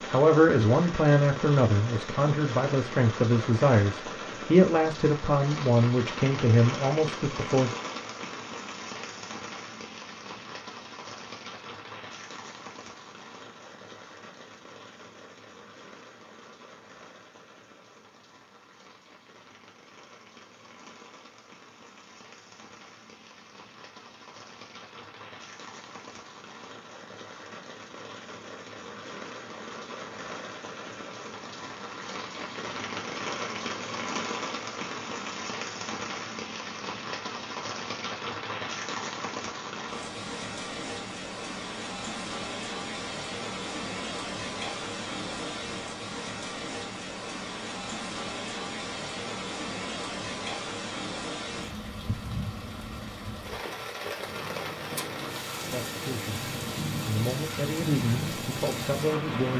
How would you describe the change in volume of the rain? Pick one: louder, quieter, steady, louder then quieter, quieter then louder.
quieter then louder.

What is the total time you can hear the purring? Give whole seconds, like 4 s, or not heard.
5 s.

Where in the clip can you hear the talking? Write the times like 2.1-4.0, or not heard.
0.1-7.7, 55.7-59.5.